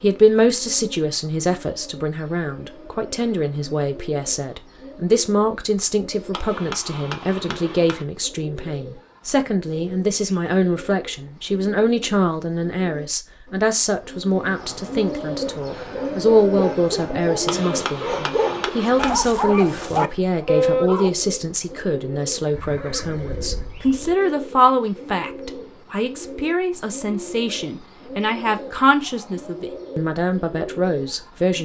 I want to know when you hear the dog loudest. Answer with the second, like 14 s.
21 s.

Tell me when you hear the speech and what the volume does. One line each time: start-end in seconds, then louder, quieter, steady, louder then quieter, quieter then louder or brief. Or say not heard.
0.0-31.6 steady.